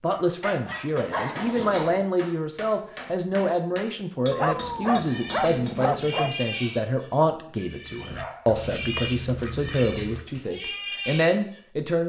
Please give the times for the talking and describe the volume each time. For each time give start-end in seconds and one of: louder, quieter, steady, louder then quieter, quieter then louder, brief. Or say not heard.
0.0-12.0 steady.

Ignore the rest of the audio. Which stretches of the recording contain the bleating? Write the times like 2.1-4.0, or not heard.
4.8-11.6.